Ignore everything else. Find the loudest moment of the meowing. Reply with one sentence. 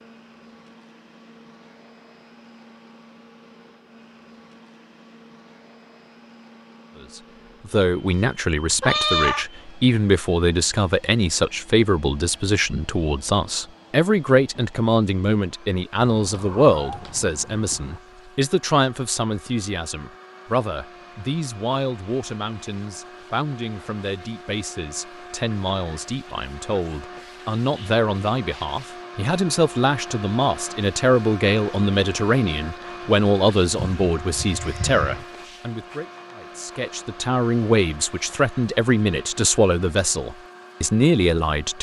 The loudest moment of the meowing is at 9 seconds.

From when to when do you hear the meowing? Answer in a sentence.
You can hear the meowing from 8.8 to 9.4 s, from 16.1 to 18.0 s and from 33.8 to 35.2 s.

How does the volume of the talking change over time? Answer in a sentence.
The volume of the talking goes down, then up.